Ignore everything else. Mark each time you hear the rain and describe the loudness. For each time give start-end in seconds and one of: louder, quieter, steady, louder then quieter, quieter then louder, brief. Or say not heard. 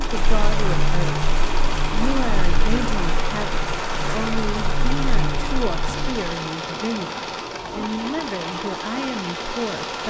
0.0-10.0 quieter.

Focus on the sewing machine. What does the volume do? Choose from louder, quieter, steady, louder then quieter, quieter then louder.
steady.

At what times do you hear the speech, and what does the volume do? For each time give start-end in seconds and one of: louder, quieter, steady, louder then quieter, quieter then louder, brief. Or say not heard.
0.0-1.2 brief
1.9-10.0 steady.